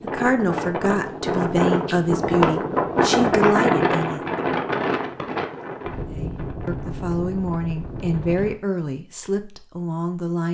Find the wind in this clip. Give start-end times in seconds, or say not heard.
0.0-8.6.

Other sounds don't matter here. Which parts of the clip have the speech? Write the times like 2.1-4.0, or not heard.
0.0-4.2, 6.1-10.4.